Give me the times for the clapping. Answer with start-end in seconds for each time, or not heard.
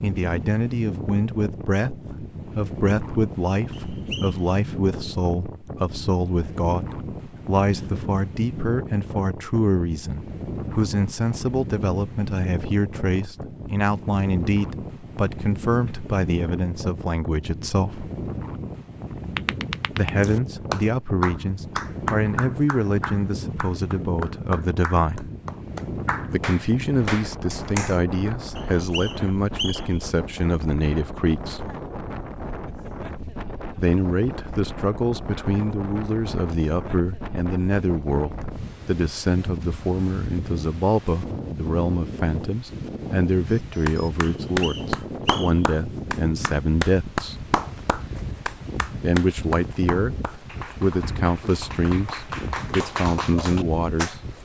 19.4-27.9, 43.9-54.1.